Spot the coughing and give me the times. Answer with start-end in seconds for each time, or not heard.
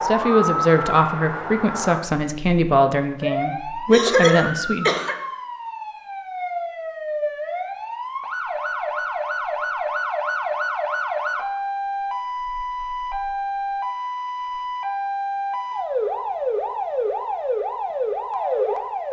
3.9-5.2.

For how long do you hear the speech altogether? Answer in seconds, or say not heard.
5 s.